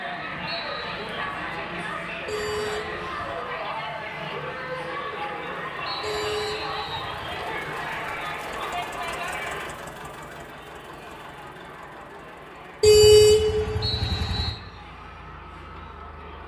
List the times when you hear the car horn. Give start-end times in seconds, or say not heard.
2.2-3.2, 6.0-7.2, 12.8-14.5.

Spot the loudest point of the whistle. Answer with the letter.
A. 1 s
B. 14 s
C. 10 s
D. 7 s
B.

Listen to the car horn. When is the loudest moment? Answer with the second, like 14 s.
13 s.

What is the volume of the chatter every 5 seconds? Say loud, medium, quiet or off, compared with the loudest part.
loud, loud, quiet, quiet.